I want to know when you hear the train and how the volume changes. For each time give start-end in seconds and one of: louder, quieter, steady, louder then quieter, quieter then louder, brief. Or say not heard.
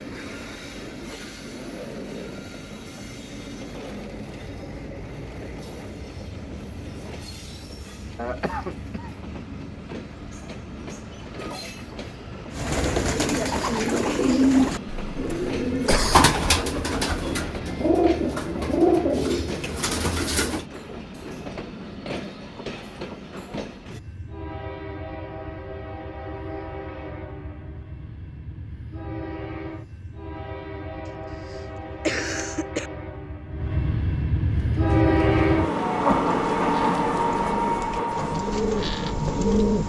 0.0-39.8 louder.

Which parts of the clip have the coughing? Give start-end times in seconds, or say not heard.
8.2-9.1, 15.1-16.2, 31.4-32.9.